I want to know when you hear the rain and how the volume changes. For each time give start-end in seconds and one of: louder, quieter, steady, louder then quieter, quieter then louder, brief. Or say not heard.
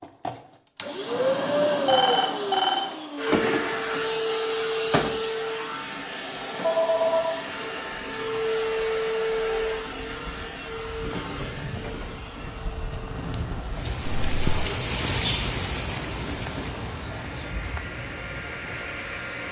7.5-19.4 louder then quieter.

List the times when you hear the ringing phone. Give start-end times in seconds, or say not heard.
1.9-3.0, 6.6-7.5, 14.0-14.5.